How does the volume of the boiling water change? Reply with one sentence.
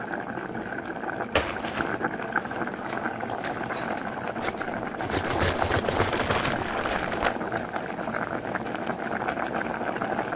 The volume of the boiling water stays about the same.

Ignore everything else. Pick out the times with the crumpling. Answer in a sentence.
The crumpling can be heard from 1.4 to 2.0 s and from 6.0 to 7.3 s.